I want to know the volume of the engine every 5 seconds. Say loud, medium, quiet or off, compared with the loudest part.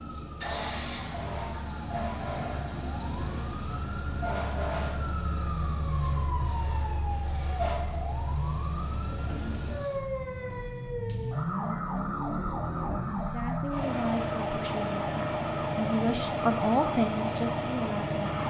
medium, quiet, loud, loud.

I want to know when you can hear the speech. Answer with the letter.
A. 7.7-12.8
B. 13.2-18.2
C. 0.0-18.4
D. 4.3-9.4
B.